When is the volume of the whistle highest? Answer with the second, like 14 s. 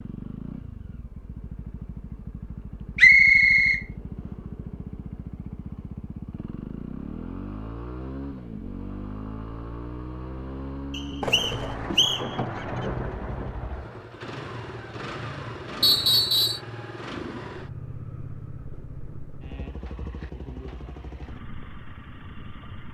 3 s.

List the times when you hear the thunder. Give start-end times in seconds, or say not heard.
11.2-14.1.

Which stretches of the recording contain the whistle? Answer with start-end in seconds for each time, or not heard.
3.0-3.8, 10.9-12.2, 15.8-16.6.